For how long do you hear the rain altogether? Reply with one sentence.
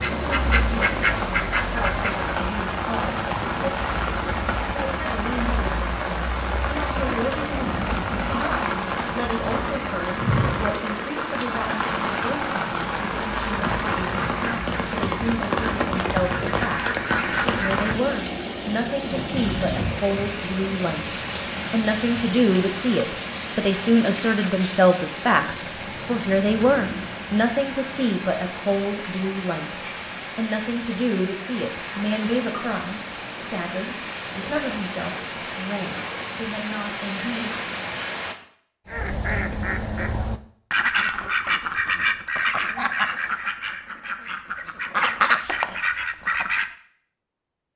The rain can be heard for 38 seconds in total.